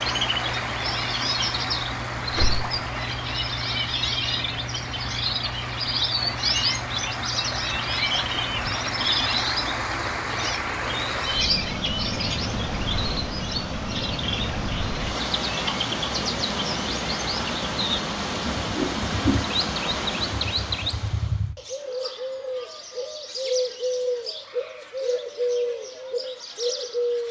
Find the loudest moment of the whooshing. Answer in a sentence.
The loudest moment of the whooshing is at 19 seconds.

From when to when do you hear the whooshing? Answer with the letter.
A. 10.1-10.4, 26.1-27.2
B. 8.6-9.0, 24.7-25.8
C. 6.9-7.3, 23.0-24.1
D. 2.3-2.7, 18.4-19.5
D.